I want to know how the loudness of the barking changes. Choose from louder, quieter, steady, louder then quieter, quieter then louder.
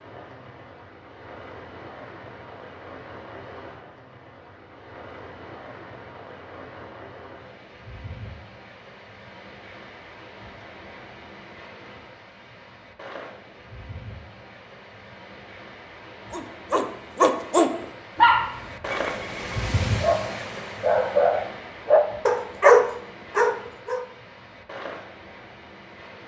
quieter then louder.